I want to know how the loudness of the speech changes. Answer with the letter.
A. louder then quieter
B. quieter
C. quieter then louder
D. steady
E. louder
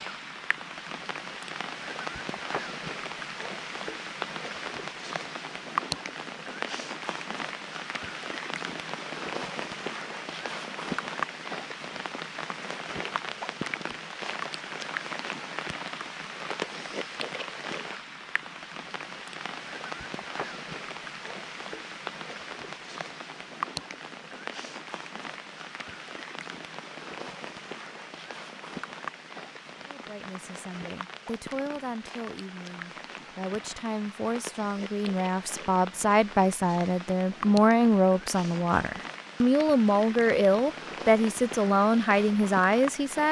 E.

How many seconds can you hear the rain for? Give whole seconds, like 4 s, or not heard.
43 s.